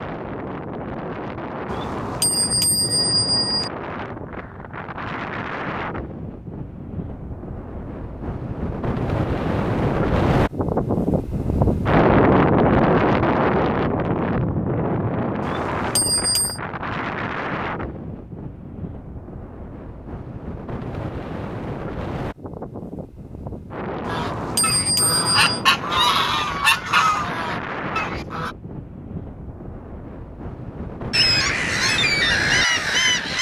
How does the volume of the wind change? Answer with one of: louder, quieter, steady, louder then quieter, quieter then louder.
louder then quieter.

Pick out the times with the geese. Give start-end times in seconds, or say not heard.
24.1-28.6, 31.1-33.3.